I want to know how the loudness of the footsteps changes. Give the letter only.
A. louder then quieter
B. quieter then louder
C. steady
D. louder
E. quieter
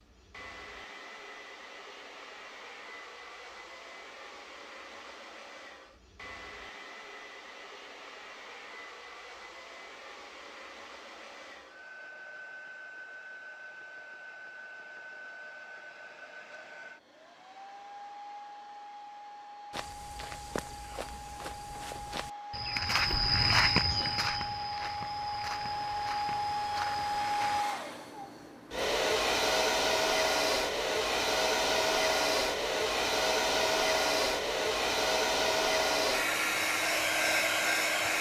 A.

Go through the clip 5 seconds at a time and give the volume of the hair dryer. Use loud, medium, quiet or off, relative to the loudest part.
quiet, quiet, quiet, quiet, quiet, loud, loud, loud.